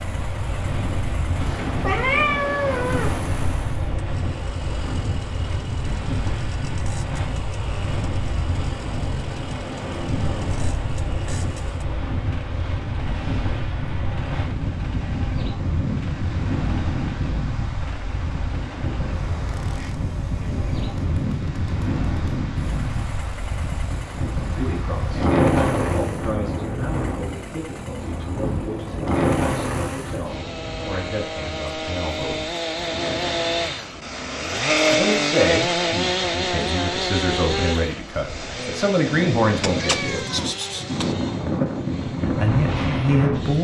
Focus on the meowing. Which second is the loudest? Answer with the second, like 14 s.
2 s.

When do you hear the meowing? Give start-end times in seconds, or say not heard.
1.4-3.2, 39.6-41.1.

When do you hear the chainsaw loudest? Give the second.
35 s.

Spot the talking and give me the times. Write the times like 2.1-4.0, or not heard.
24.5-32.4, 34.9-40.2, 42.2-43.5.